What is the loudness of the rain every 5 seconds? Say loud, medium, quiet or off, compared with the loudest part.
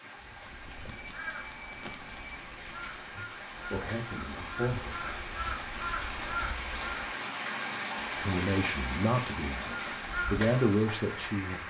medium, loud, loud.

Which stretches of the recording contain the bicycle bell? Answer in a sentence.
The bicycle bell can be heard from 0.8 to 2.4 s and from 8.0 to 9.5 s.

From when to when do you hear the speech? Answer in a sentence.
The speech can be heard from 3.1 to 5.2 s and from 8.2 to 11.6 s.